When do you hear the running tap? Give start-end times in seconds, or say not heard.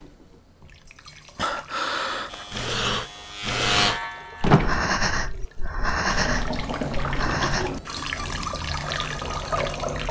0.0-10.0.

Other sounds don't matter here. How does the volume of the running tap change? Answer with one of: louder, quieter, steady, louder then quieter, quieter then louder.
louder.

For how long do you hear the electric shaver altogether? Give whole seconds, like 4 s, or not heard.
2 s.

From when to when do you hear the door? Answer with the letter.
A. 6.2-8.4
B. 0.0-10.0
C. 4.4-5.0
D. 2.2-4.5
C.